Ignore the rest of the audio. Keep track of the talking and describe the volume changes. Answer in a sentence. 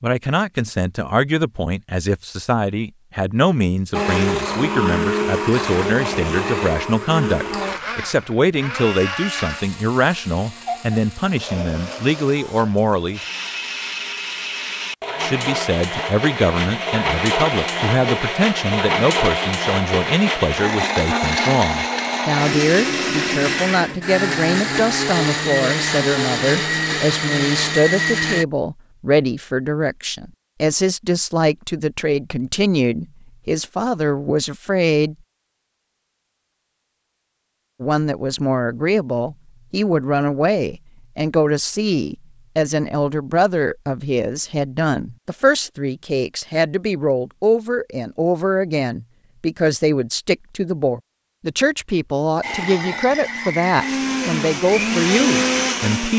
The loudness of the talking stays about the same.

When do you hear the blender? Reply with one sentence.
The blender can be heard from 3.9 to 28.4 s and from 52.4 to 56.1 s.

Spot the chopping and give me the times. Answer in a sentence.
You can't hear the chopping here.